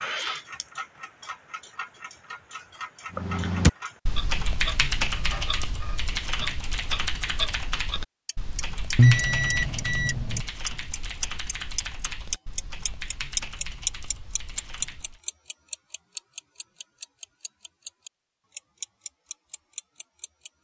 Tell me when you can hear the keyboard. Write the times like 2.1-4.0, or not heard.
3.1-15.2.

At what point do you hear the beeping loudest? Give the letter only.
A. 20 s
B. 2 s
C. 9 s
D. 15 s
C.